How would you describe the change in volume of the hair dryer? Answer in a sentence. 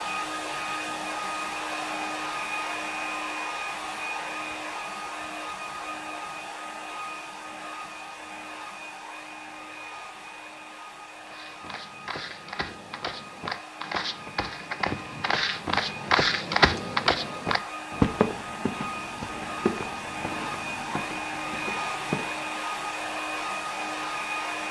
The volume of the hair dryer goes down, then up.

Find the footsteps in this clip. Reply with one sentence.
The footsteps can be heard from 11.2 to 22.4 s.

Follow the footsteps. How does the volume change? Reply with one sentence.
The volume of the footsteps goes up, then down.